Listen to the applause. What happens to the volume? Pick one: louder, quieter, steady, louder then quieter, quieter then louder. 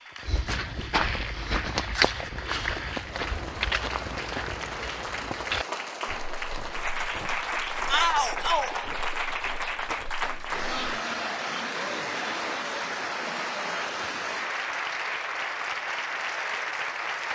louder.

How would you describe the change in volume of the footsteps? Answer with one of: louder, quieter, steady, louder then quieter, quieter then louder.
quieter.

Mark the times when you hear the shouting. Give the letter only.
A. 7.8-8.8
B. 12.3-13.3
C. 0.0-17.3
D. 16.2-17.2
A.